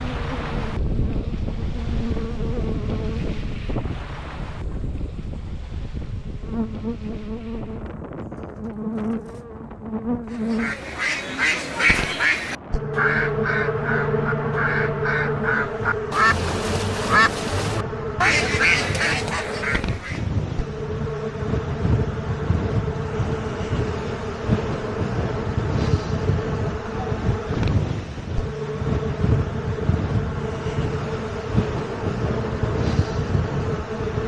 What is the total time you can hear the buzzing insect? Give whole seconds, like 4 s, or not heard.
34 s.